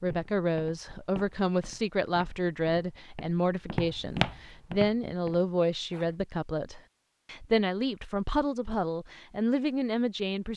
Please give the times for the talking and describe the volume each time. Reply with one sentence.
The talking can be heard from 0.0 to 10.5 s, at a steady volume.